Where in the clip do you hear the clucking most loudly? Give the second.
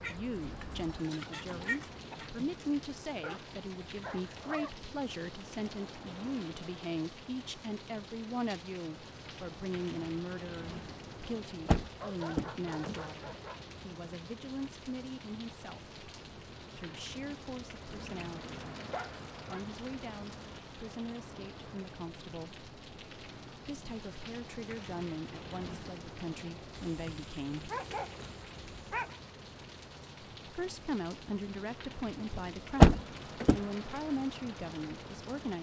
2 s.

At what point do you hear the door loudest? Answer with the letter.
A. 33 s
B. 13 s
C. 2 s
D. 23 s
A.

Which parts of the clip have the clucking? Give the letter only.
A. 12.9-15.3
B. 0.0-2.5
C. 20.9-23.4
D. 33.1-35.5
B.